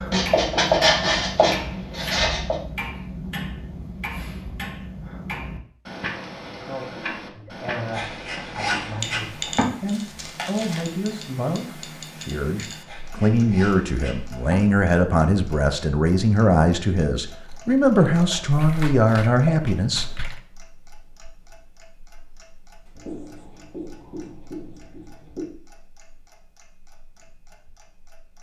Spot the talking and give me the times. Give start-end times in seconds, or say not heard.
6.5-20.1.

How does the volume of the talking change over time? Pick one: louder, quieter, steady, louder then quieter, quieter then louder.
louder.